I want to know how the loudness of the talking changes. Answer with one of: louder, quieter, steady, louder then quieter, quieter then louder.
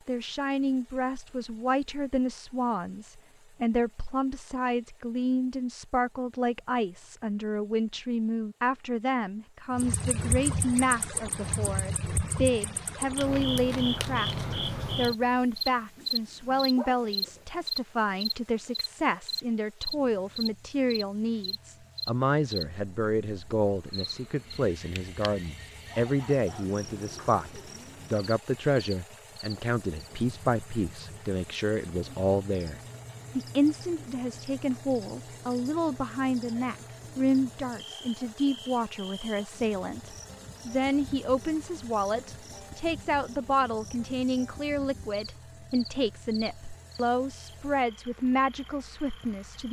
steady.